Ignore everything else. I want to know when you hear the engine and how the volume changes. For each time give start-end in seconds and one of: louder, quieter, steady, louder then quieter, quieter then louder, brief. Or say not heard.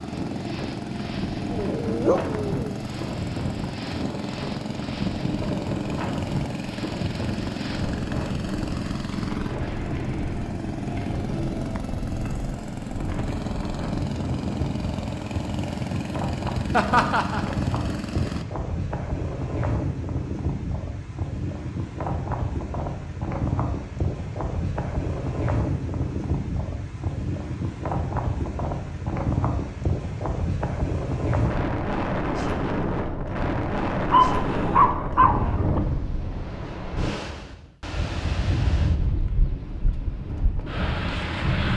0.0-18.4 steady.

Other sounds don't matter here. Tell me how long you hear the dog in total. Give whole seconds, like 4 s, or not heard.
3 s.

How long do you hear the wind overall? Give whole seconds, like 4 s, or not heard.
42 s.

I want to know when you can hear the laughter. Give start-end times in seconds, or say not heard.
16.7-17.4.